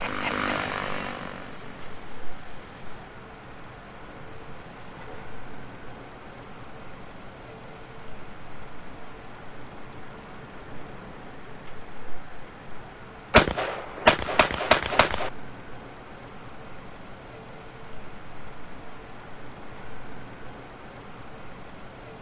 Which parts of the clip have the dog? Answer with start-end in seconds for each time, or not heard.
not heard.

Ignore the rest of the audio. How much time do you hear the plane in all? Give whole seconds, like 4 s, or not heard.
3 s.